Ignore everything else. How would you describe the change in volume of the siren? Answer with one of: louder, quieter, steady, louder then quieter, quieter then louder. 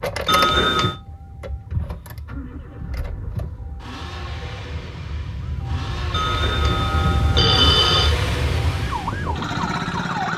louder.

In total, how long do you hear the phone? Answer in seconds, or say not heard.
3 s.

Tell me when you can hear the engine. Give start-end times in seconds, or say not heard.
0.0-10.3.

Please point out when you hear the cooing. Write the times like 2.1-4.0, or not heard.
not heard.